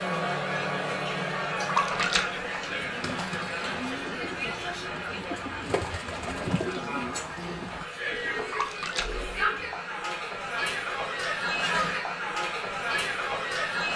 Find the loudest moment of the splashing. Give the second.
2 s.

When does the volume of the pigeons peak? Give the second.
7 s.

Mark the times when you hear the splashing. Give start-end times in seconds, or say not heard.
1.6-2.3, 8.5-9.2.